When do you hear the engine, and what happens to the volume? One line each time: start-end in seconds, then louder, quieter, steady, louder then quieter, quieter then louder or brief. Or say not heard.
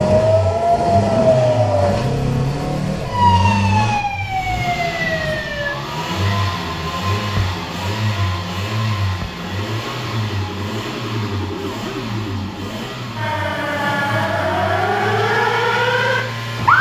0.0-16.7 quieter.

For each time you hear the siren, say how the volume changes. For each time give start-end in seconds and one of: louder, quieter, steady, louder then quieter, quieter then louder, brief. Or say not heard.
0.0-16.7 quieter then louder.